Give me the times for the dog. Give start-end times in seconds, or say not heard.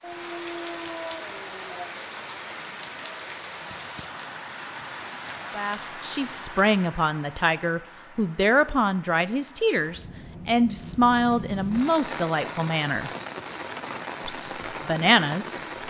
0.0-1.9.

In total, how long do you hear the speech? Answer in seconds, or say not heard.
9 s.